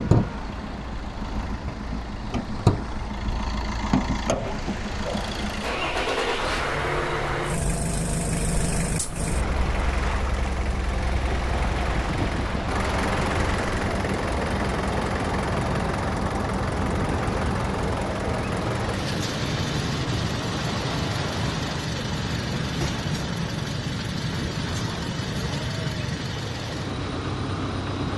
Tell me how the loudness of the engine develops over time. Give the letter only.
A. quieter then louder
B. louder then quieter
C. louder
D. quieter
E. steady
E.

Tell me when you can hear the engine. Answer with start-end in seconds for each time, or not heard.
0.0-28.1.